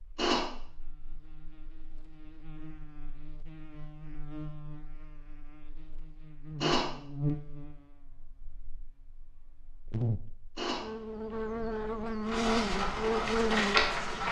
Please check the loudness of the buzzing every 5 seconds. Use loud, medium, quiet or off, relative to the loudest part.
quiet, medium, loud.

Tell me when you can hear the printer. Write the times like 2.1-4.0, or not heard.
12.2-14.2.